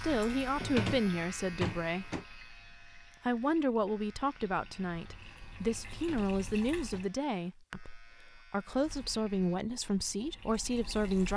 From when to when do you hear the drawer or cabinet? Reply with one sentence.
The drawer or cabinet can be heard from 0.6 to 2.2 s and from 5.8 to 7.2 s.